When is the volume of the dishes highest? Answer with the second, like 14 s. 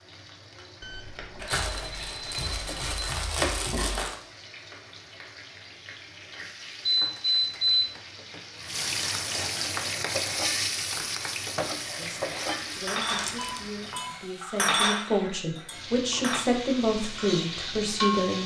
15 s.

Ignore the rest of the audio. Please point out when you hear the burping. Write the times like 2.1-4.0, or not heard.
not heard.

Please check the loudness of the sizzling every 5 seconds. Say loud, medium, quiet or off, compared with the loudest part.
medium, loud, loud, loud.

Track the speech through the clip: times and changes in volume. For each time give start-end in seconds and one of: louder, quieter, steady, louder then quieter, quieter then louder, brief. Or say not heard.
11.9-18.4 louder.